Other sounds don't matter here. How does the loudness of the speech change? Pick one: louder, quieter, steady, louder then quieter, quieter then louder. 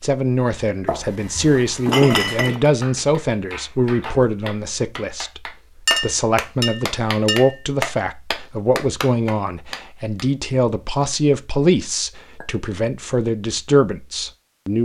steady.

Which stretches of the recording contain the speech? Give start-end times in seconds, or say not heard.
0.0-5.4, 6.0-14.7.